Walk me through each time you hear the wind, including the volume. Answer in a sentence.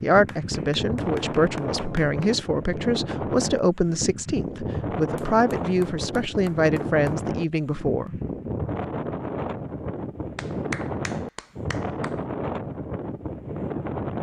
The wind can be heard from 0.0 to 14.1 s, at a steady volume.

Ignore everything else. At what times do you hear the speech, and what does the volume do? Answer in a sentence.
The speech can be heard from 0.0 to 8.2 s, at a steady volume.